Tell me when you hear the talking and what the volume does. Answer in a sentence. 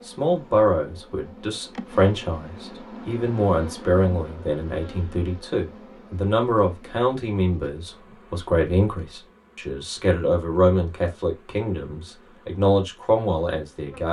You can hear the talking from 0.1 to 14.0 s, at a steady volume.